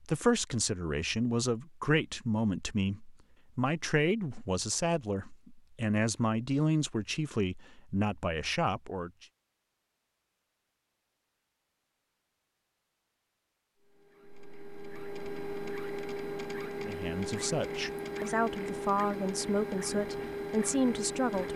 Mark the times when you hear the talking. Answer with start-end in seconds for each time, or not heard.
0.0-9.2, 16.8-21.5.